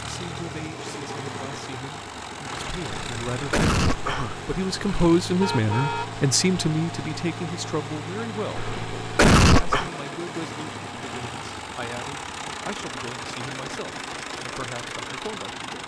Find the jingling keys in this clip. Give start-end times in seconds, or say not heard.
not heard.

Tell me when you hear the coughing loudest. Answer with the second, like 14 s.
9 s.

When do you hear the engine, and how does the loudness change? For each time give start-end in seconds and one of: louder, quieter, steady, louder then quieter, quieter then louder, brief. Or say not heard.
0.0-15.8 steady.